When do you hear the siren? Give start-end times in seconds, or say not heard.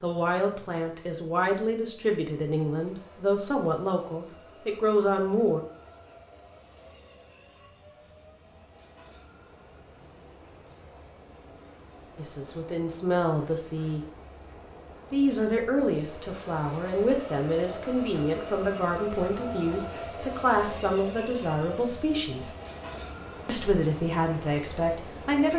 not heard.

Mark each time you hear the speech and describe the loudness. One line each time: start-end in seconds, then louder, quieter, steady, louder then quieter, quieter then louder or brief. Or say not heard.
0.0-5.6 louder
12.2-14.0 brief
15.1-22.5 steady
23.4-25.5 brief.